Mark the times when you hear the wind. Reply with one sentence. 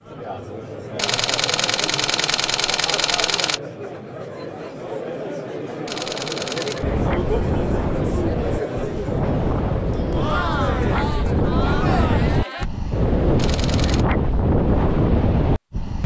You can hear the wind from 6.8 to 16.0 s.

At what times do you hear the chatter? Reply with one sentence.
The chatter can be heard from 0.0 to 12.7 s.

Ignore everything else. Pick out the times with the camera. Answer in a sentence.
You can hear the camera from 0.9 to 3.6 s, from 5.8 to 6.8 s and from 13.3 to 14.1 s.